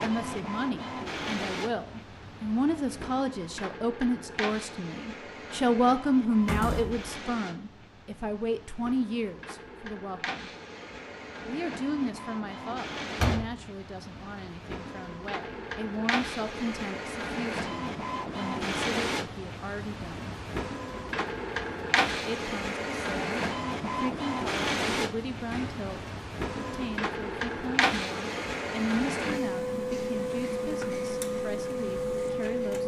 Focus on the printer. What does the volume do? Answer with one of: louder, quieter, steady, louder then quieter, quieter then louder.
louder.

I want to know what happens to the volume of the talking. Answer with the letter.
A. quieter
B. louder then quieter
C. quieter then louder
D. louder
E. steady
A.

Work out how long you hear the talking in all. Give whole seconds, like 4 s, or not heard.
30 s.